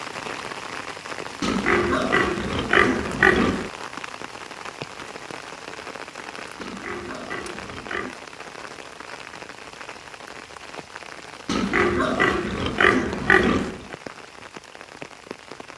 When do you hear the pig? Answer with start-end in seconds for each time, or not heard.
1.4-3.7, 6.5-8.2, 11.4-13.9.